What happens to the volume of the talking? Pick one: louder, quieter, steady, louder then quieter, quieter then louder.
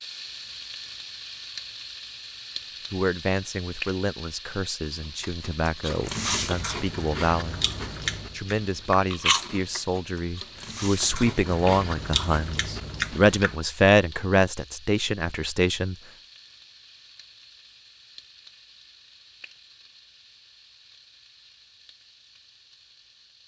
louder.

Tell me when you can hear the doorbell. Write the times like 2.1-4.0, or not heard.
not heard.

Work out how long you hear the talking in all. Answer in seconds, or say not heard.
12 s.